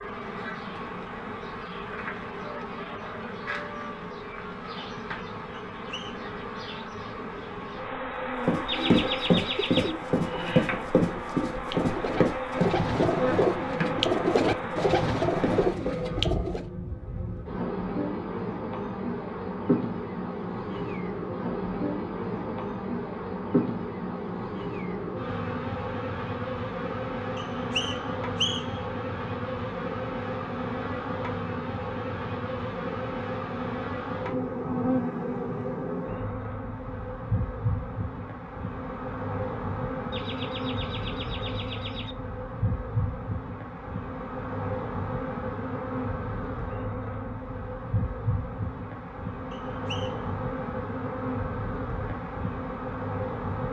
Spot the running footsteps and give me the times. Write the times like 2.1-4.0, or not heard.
8.4-16.0.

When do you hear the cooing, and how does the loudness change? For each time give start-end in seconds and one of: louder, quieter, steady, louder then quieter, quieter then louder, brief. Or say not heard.
8.7-16.6 louder.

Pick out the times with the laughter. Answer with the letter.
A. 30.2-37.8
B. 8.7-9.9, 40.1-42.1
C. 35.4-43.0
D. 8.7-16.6
B.